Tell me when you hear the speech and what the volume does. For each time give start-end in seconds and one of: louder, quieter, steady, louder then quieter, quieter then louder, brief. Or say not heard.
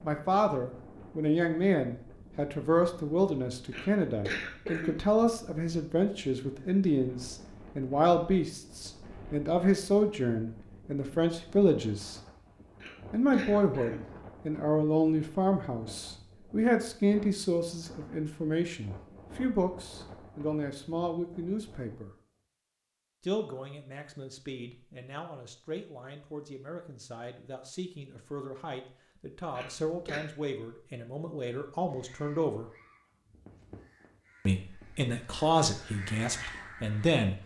0.0-12.2 steady
13.1-22.1 quieter
23.2-32.7 louder
34.5-37.4 brief.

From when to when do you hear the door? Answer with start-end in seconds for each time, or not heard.
not heard.